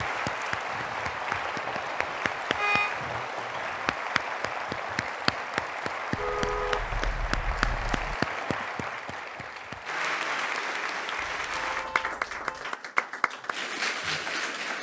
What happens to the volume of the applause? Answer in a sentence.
The volume of the applause stays about the same.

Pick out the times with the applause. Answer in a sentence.
The applause can be heard from 0.0 to 14.7 s.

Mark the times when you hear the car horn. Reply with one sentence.
You can hear the car horn from 2.0 to 3.0 s, from 6.2 to 8.2 s and from 11.2 to 12.7 s.